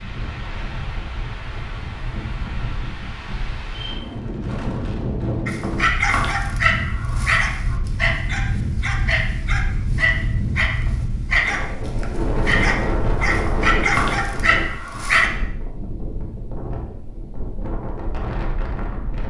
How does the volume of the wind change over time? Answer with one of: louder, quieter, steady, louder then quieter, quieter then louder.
louder then quieter.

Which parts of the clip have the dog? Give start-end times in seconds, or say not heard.
5.5-15.3.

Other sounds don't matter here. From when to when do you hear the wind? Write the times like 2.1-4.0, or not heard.
0.0-19.2.